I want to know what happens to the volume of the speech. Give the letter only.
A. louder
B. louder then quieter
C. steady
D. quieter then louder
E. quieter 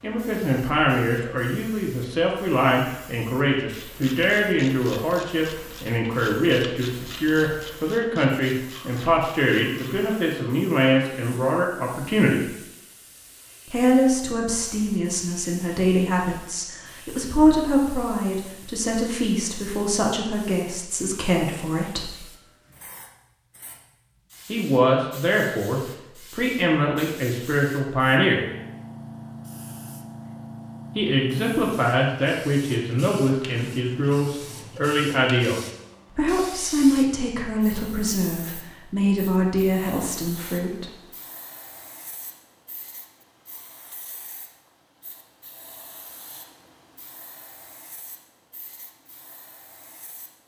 C.